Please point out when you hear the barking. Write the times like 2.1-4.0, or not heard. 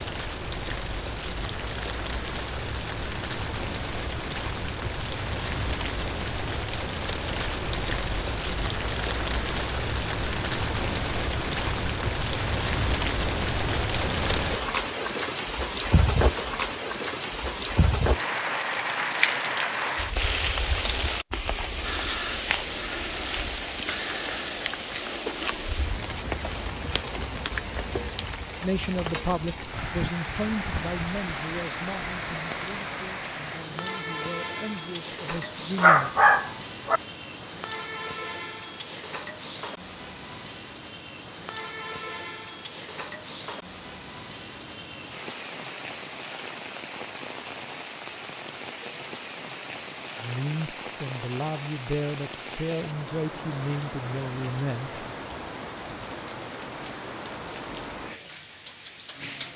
35.8-37.0.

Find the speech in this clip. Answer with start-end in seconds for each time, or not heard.
28.6-36.1, 50.1-55.0.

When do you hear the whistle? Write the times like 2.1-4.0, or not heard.
not heard.